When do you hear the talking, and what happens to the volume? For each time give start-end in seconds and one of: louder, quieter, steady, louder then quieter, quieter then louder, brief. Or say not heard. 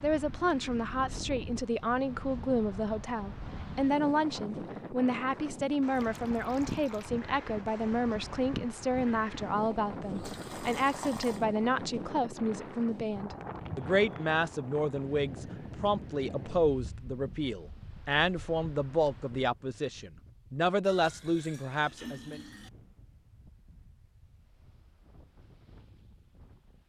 0.0-22.4 steady.